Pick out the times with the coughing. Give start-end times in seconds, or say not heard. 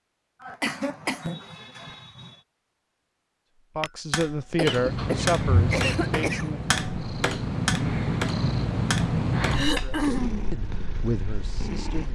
0.4-2.4, 4.5-6.5, 9.5-10.4.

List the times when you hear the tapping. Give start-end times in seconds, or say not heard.
3.8-9.9.